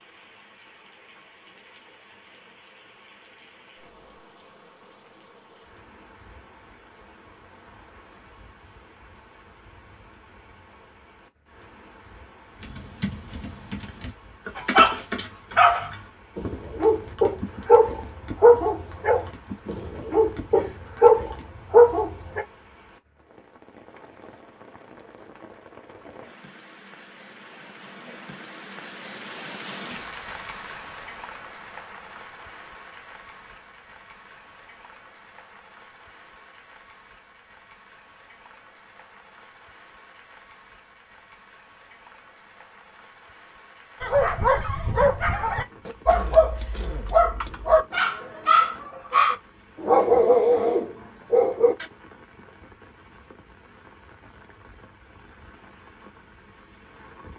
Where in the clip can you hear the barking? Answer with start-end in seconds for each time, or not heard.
14.6-22.4, 44.0-51.9.